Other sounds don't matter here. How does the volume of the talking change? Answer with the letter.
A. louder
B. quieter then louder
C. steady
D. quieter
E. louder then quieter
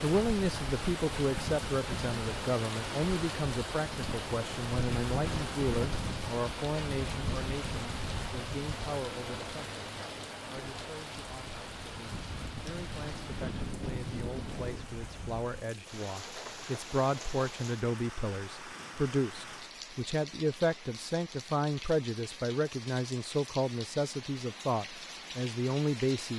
B.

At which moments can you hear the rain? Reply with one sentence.
The rain can be heard from 0.0 to 26.3 s.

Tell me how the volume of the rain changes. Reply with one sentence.
The volume of the rain goes down.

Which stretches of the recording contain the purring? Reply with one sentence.
You can't hear the purring here.